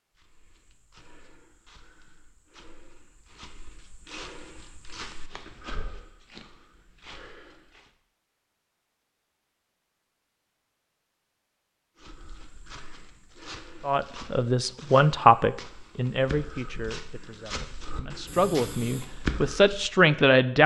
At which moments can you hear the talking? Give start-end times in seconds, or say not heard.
13.8-20.6.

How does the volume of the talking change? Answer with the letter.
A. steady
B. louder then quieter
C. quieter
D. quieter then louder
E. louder
D.